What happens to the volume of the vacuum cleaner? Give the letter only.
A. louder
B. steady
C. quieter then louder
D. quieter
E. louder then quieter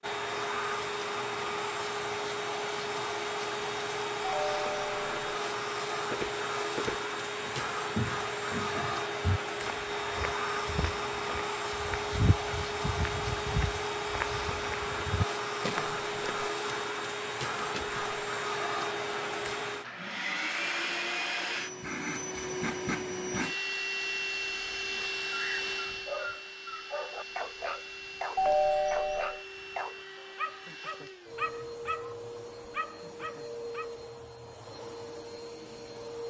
D.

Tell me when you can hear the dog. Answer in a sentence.
You can hear the dog from 24.9 to 33.9 s.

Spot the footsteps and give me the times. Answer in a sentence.
The footsteps can be heard from 6.1 to 16.4 s.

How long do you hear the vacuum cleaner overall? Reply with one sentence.
You can hear the vacuum cleaner for 36 seconds altogether.